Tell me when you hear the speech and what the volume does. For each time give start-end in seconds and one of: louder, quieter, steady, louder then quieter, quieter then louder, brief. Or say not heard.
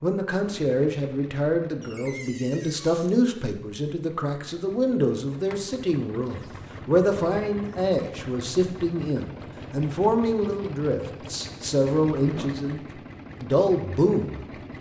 0.0-12.8 steady
13.4-14.4 brief.